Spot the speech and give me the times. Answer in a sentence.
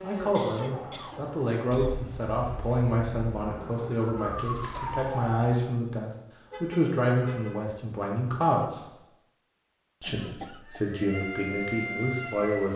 You can hear the speech from 0.0 to 8.9 s and from 10.0 to 12.7 s.